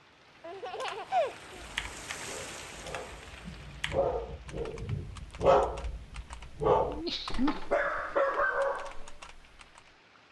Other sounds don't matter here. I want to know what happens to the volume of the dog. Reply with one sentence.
The loudness of the dog goes up.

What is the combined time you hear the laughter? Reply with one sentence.
The laughter can be heard for 2 seconds in total.